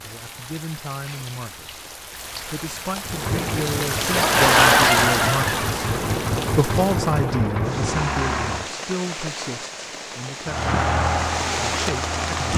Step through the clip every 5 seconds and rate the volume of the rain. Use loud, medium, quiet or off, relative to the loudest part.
loud, medium, medium.